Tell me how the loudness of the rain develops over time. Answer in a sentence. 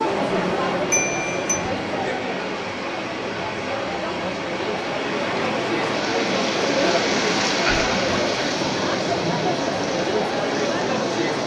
The volume of the rain goes up, then down.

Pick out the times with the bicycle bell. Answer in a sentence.
The bicycle bell can be heard from 0.9 to 1.6 s.